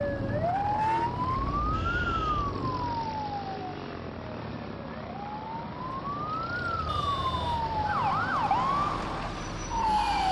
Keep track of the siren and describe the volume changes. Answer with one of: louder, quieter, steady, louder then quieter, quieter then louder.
quieter then louder.